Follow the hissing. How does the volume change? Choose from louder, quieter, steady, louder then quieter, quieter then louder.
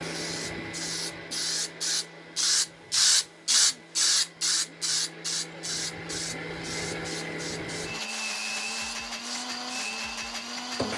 louder then quieter.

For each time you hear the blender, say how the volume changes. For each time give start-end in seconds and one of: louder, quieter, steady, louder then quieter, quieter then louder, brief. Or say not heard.
0.0-10.9 quieter then louder.